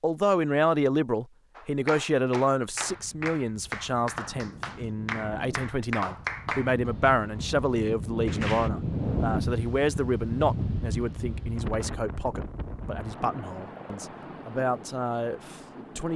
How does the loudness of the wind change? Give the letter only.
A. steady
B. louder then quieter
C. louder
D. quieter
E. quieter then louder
B.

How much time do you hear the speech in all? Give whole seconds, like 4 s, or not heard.
16 s.